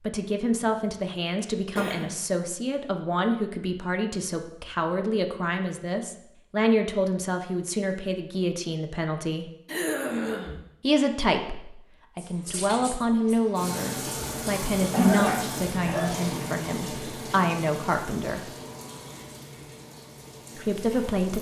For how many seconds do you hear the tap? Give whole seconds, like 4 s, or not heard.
9 s.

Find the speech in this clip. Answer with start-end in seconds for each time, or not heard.
0.0-9.5, 10.8-18.6, 20.6-21.3.